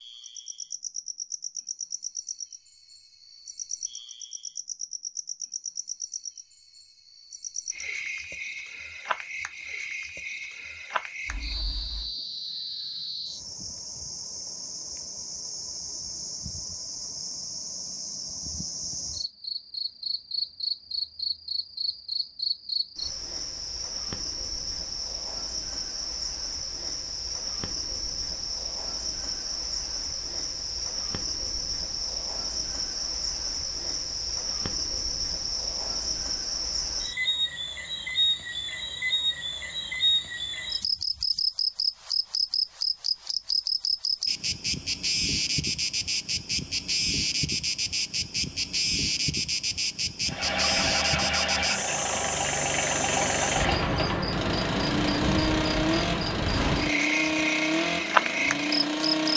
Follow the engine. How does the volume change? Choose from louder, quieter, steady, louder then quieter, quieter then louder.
steady.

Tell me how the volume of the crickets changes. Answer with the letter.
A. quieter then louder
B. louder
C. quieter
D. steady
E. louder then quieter
B.